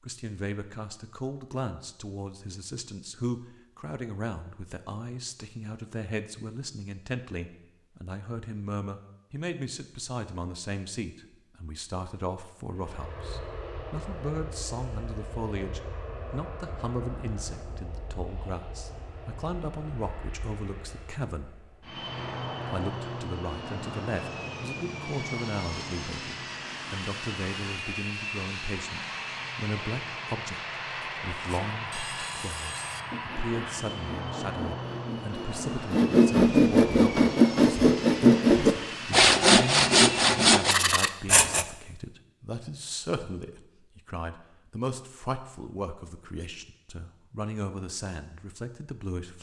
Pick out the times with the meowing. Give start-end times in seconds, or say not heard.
not heard.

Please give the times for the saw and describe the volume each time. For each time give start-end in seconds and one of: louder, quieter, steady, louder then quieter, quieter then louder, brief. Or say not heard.
31.0-41.6 louder.